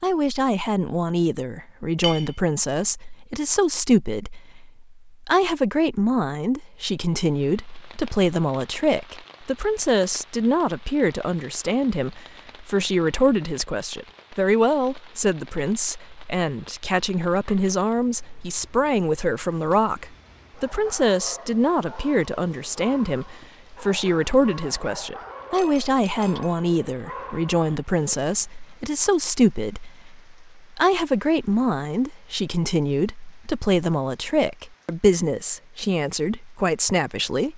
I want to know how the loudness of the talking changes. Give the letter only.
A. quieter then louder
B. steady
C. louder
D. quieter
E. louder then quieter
B.